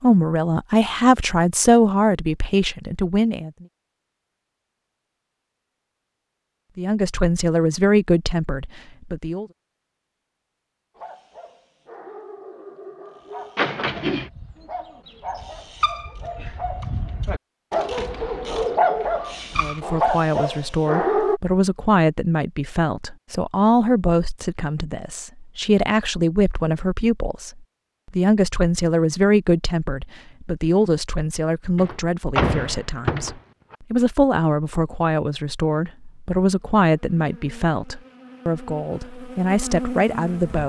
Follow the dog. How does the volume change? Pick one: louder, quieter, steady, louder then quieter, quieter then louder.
louder.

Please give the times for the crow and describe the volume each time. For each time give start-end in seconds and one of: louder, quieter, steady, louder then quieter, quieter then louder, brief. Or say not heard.
not heard.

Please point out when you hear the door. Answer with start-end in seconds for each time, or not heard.
13.6-14.3, 31.8-33.8.